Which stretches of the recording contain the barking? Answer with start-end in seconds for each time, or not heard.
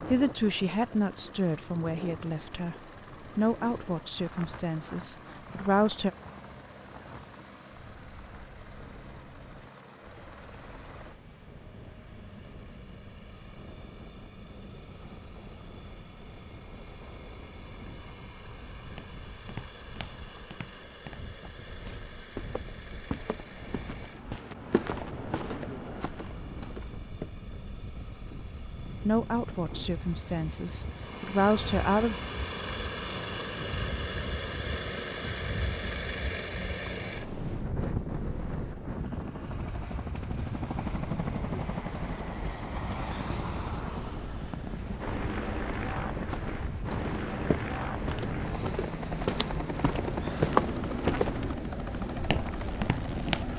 not heard.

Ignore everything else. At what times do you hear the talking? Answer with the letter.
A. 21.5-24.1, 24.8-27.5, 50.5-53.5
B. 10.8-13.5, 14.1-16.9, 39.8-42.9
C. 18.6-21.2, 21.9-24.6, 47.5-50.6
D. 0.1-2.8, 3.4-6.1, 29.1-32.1
D.